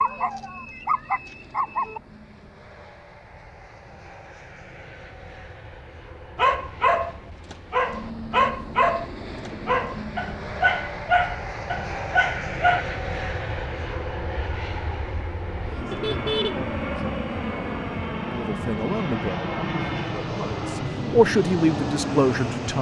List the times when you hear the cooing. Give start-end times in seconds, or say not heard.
not heard.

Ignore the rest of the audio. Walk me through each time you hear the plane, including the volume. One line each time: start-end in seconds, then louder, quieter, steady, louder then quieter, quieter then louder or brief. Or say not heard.
0.0-22.7 louder.